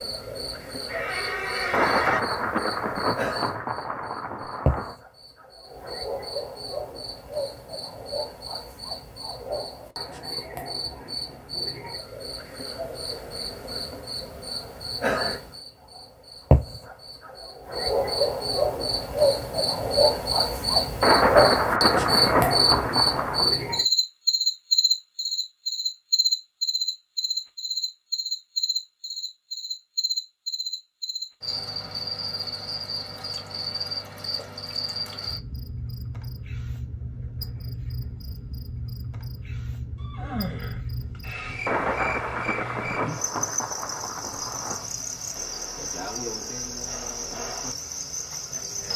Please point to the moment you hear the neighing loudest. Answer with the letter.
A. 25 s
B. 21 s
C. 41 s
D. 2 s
D.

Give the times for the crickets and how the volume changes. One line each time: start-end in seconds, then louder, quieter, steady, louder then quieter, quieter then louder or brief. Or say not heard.
0.0-48.9 louder then quieter.